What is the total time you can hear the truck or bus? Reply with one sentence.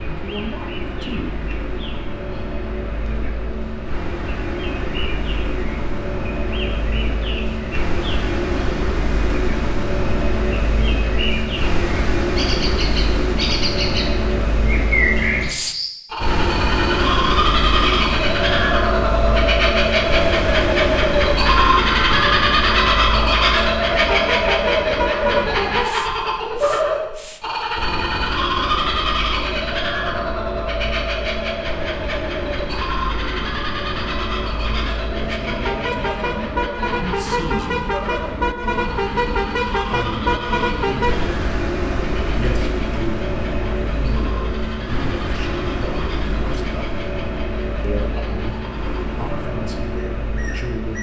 The truck or bus can be heard for 51 seconds in total.